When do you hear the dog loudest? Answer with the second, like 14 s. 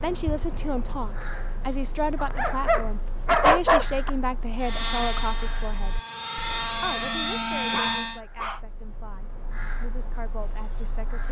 4 s.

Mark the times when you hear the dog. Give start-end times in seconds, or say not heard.
2.1-4.1, 7.7-8.6.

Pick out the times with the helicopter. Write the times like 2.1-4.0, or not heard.
4.6-8.2.